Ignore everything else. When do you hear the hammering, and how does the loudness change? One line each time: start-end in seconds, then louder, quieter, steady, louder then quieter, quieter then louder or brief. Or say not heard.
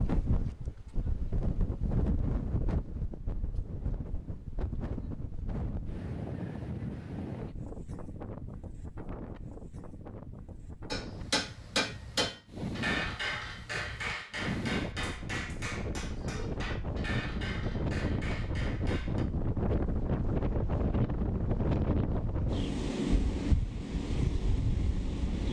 10.9-19.2 quieter.